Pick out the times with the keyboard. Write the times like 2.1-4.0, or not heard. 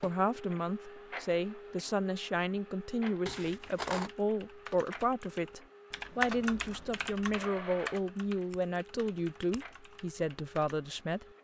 3.3-10.8.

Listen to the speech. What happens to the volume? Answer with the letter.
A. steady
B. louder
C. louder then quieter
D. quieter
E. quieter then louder
A.